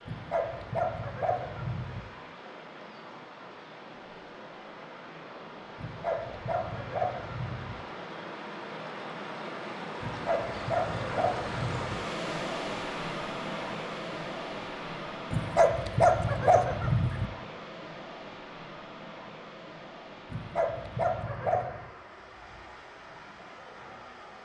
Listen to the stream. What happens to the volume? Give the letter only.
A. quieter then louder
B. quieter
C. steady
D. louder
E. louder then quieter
E.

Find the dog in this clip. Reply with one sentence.
The dog can be heard from 0.1 to 2.0 s, from 5.8 to 7.8 s, from 10.0 to 11.9 s, from 15.3 to 17.2 s and from 20.3 to 21.9 s.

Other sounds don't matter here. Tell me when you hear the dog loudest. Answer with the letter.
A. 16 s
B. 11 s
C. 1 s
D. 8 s
A.